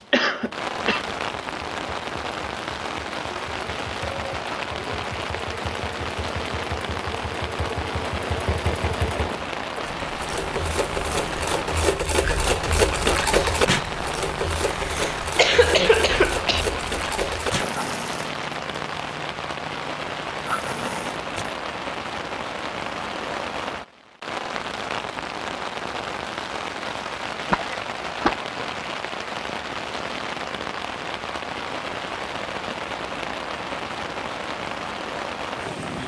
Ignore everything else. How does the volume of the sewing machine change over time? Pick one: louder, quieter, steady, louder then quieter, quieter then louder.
louder then quieter.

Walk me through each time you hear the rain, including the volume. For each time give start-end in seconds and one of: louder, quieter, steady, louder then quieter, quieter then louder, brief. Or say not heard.
0.0-36.0 steady.